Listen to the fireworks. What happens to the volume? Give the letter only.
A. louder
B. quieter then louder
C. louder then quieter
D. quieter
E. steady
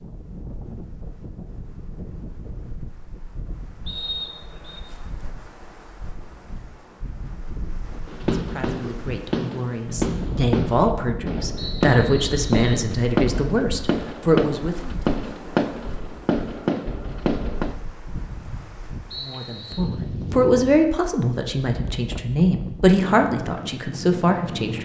E.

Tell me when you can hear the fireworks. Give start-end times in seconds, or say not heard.
7.9-17.8.